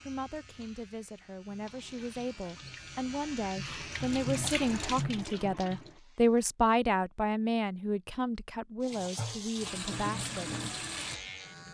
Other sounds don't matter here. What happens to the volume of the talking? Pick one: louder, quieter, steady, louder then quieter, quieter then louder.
louder then quieter.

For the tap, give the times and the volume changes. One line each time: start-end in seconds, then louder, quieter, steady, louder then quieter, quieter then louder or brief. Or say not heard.
1.4-6.5 louder then quieter
8.8-11.6 brief.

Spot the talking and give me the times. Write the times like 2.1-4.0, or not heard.
0.0-10.5.